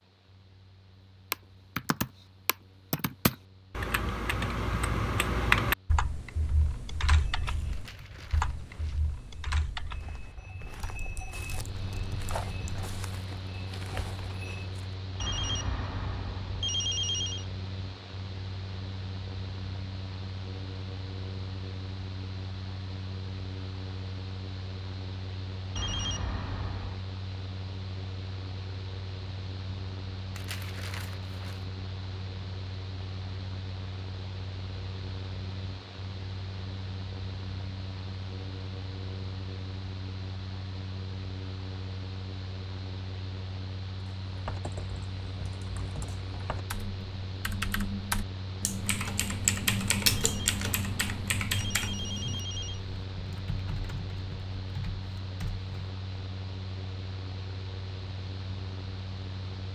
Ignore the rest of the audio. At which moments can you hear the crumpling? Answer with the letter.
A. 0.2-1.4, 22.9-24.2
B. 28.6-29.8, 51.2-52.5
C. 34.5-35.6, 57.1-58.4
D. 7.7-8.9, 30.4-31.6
D.